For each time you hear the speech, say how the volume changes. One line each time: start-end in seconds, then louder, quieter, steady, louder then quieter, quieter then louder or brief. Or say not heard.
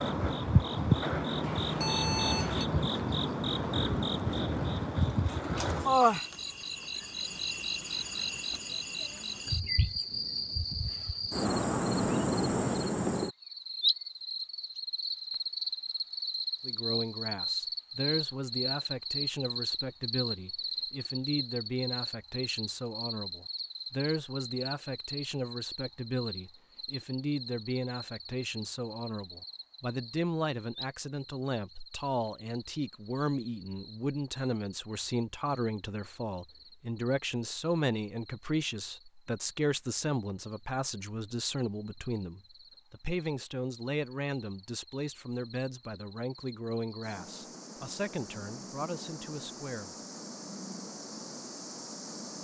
16.6-50.0 steady.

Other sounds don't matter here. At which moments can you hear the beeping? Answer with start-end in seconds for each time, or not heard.
1.4-2.6.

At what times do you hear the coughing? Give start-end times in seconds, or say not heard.
not heard.